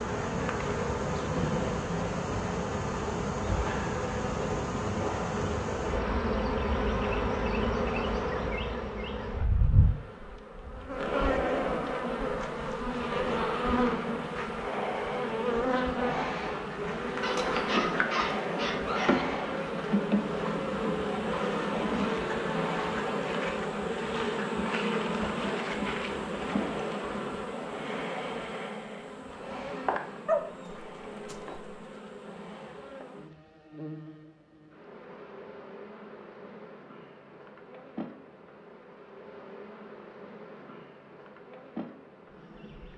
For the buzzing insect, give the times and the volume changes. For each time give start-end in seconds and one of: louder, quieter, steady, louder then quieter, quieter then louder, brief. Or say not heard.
0.0-42.9 quieter.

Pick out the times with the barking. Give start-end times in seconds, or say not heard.
17.2-19.2, 30.2-31.7.